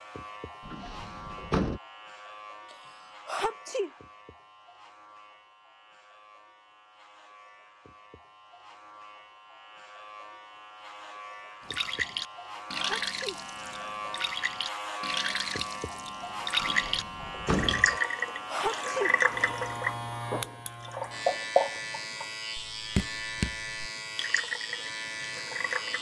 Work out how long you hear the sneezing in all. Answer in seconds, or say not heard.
4 s.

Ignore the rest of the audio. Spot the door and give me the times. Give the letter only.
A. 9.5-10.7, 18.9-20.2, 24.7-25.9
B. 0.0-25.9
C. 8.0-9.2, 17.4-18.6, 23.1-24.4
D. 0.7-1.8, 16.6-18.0
D.